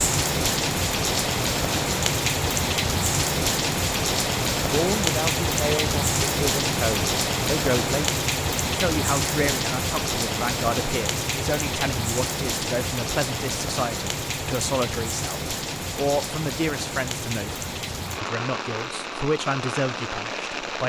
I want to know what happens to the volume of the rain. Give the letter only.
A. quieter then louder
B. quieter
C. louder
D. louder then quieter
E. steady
B.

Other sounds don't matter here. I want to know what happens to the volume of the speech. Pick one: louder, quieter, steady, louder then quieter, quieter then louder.
steady.